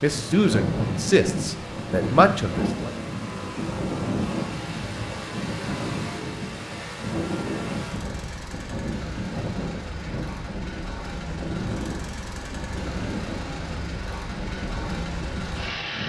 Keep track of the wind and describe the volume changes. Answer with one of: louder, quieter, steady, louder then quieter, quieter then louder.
quieter.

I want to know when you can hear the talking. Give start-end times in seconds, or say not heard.
0.0-2.9.